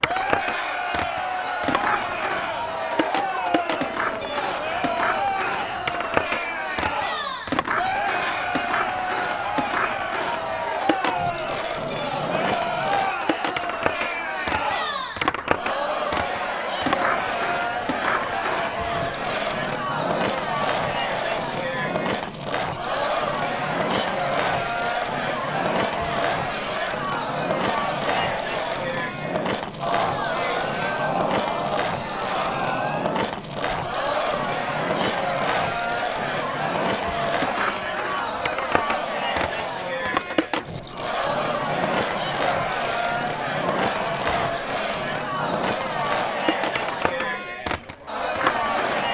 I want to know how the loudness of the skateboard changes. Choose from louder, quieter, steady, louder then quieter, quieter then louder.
steady.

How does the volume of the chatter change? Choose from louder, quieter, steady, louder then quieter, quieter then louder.
steady.